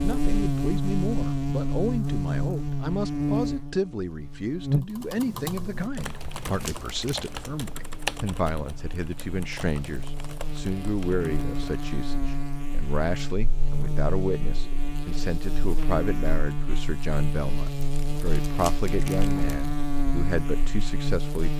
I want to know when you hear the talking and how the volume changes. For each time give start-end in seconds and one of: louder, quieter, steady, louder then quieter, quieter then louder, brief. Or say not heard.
0.0-21.5 steady.